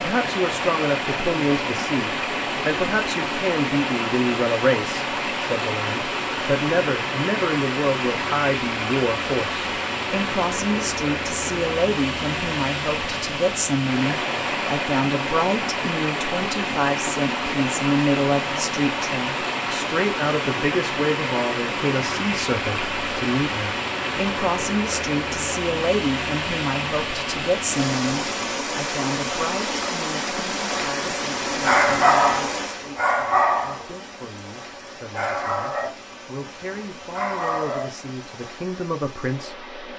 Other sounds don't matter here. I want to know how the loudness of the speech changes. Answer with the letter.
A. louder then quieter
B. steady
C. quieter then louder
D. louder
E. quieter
E.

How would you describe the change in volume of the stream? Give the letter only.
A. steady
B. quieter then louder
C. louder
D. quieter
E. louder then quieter
D.